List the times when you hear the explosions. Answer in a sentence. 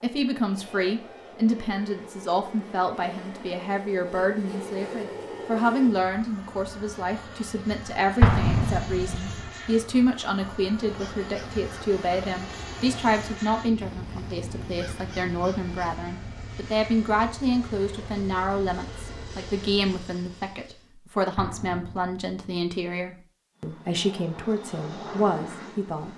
The explosions can be heard from 8.2 to 9.4 s and from 21.4 to 22.4 s.